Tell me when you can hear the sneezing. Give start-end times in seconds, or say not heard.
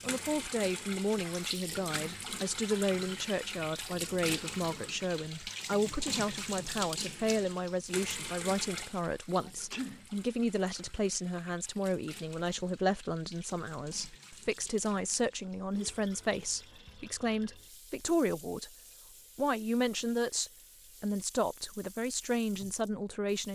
9.3-10.1.